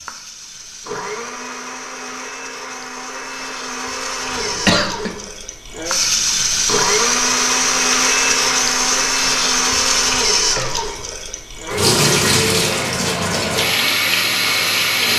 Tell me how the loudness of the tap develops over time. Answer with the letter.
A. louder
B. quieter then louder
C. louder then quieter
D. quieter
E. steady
A.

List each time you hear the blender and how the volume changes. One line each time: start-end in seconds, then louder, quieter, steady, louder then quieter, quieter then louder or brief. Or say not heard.
0.0-15.1 louder then quieter.